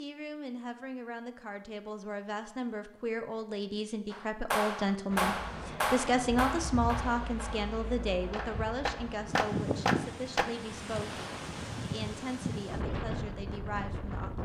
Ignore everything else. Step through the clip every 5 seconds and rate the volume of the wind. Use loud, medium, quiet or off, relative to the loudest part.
off, loud, loud.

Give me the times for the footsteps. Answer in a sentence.
The footsteps can't be heard in this clip.